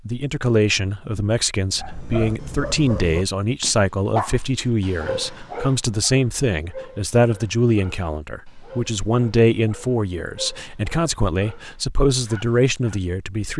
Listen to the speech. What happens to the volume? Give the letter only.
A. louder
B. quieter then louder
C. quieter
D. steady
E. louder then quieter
D.